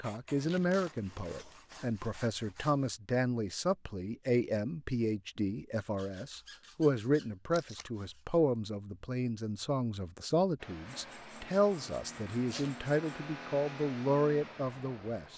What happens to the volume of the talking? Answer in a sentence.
The loudness of the talking stays about the same.